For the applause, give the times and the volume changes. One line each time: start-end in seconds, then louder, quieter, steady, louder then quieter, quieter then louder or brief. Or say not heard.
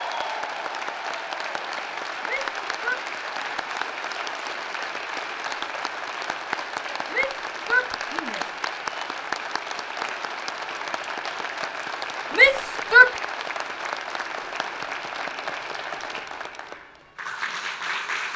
0.0-18.3 steady.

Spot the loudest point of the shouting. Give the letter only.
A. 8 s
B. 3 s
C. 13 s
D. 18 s
C.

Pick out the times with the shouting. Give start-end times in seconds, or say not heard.
2.2-3.0, 7.1-8.6, 12.3-13.1.